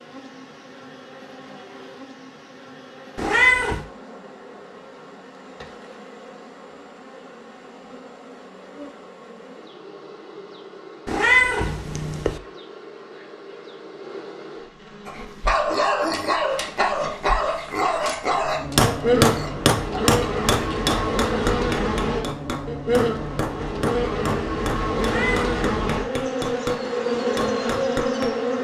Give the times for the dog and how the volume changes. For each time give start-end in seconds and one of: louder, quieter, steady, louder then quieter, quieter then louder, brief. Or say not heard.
15.1-20.9 quieter.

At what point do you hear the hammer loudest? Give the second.
19 s.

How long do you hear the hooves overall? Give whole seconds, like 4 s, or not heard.
not heard.